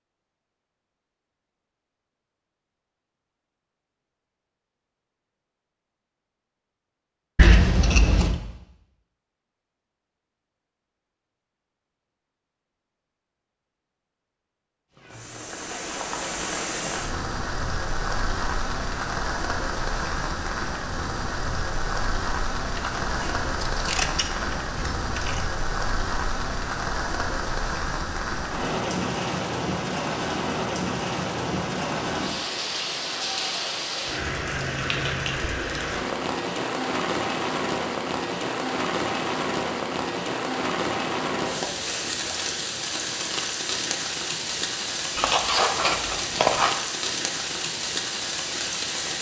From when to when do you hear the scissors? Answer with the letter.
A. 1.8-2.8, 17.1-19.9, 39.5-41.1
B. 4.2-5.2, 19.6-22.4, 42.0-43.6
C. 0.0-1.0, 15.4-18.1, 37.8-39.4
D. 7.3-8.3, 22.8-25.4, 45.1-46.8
D.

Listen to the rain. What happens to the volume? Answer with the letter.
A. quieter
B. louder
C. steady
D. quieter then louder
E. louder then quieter
C.